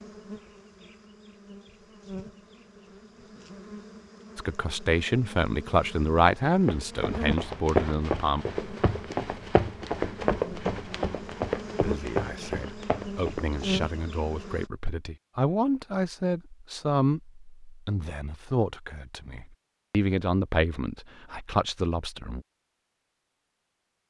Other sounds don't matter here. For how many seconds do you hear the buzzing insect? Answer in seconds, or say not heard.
14 s.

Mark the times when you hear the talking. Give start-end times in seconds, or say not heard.
4.3-8.4, 11.8-22.4.